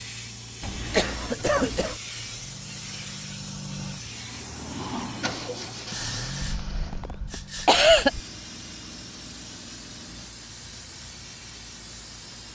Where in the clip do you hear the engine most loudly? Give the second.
5 s.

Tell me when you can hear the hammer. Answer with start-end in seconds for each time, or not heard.
not heard.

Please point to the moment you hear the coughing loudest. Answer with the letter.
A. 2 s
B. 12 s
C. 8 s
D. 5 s
C.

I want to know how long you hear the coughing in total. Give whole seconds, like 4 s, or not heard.
3 s.